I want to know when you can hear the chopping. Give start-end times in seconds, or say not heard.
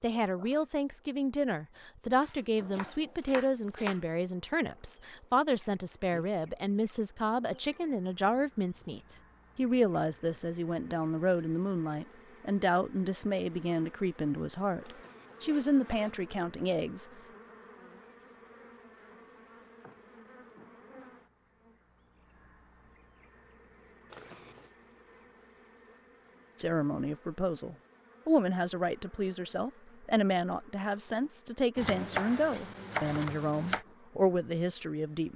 2.2-4.0, 31.8-33.9.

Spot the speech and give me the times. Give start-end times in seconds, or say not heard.
0.0-17.1, 26.6-35.3.